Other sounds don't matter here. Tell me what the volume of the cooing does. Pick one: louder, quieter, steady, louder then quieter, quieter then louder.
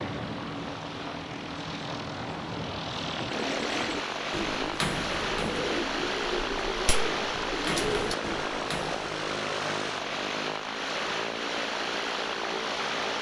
steady.